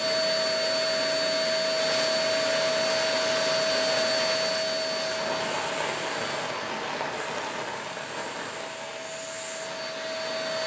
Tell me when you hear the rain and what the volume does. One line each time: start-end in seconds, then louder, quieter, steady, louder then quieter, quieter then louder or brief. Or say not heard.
1.8-10.6 quieter.